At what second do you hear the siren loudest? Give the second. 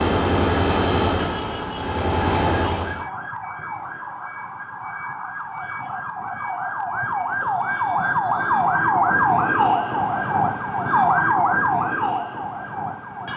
9 s.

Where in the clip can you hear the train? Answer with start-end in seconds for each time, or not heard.
0.0-3.1.